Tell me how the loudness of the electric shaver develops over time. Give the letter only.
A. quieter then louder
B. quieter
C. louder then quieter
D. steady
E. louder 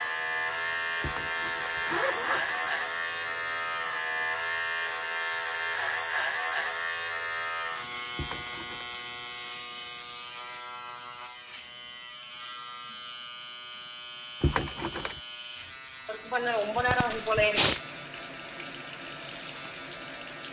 B.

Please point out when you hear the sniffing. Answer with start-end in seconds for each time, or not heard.
16.1-17.8.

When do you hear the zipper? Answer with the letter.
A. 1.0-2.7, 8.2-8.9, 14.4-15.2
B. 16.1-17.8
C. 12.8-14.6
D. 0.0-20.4
A.